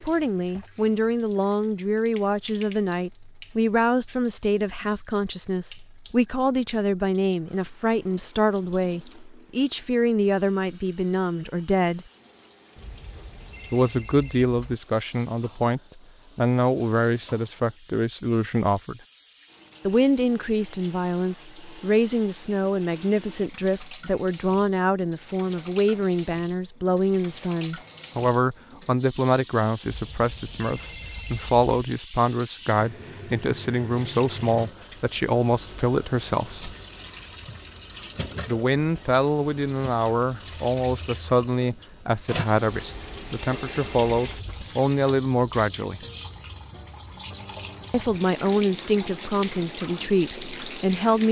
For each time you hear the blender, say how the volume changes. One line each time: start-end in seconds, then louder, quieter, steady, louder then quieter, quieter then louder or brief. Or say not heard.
not heard.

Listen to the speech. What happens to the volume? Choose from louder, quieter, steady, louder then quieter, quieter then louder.
steady.